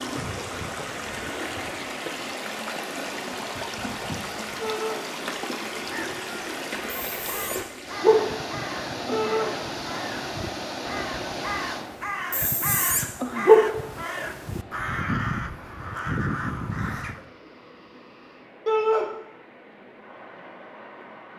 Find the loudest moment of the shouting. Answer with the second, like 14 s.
19 s.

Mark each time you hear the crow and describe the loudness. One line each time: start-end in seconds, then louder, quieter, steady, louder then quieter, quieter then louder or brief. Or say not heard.
5.8-17.3 louder.